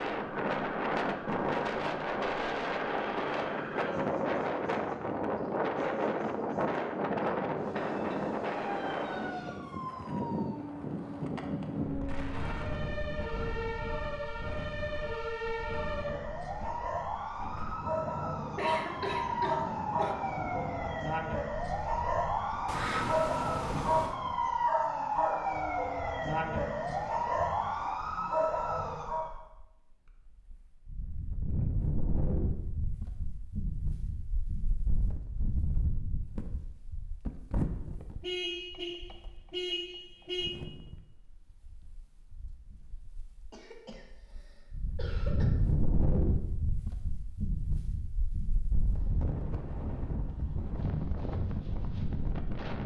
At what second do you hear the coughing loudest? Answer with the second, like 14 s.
19 s.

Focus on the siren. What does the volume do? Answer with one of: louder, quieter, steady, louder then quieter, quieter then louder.
louder.